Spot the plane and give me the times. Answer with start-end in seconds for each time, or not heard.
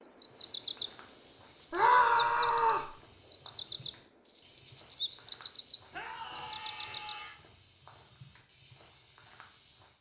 not heard.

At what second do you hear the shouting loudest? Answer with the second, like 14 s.
2 s.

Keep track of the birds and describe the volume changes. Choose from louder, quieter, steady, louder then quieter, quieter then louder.
steady.